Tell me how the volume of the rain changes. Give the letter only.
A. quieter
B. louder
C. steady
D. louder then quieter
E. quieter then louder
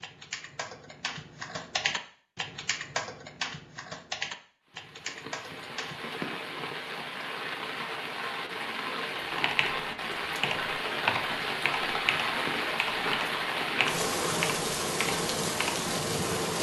B.